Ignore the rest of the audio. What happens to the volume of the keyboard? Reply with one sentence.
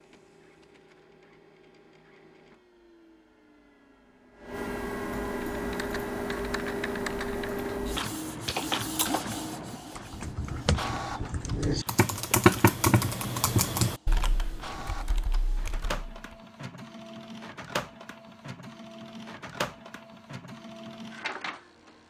The volume of the keyboard goes up, then down.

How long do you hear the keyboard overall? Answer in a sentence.
You can hear the keyboard for 11 seconds altogether.